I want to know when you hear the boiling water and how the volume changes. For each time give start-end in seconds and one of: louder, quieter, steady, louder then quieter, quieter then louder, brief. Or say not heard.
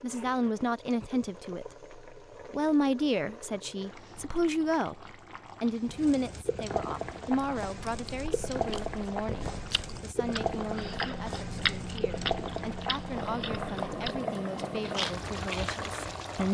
0.0-16.4 louder.